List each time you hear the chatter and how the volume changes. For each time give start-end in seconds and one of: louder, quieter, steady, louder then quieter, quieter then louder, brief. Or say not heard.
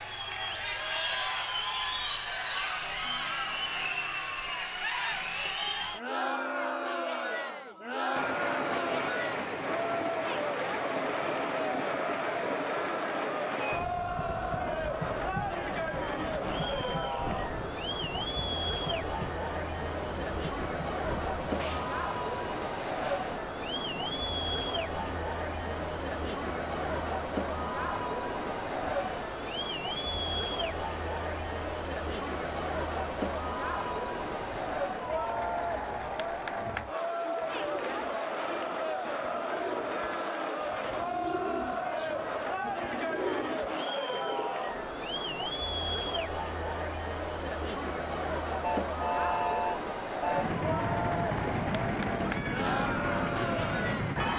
0.0-54.3 steady.